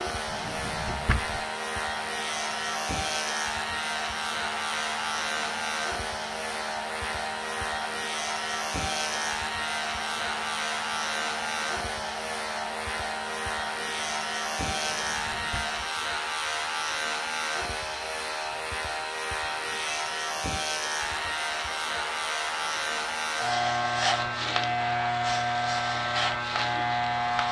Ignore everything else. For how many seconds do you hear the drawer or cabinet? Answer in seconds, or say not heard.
2 s.